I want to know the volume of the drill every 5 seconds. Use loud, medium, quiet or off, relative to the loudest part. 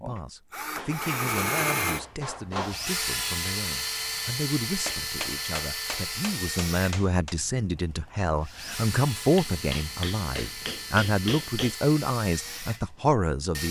loud, medium, medium.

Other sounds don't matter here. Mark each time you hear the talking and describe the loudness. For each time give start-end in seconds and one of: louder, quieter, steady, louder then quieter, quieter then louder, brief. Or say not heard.
0.0-13.6 louder.